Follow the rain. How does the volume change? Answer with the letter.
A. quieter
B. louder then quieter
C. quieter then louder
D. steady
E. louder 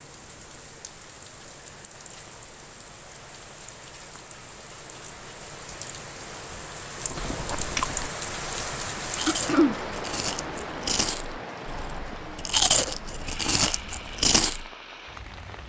B.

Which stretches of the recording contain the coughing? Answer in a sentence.
The coughing can be heard from 9.2 to 9.8 s.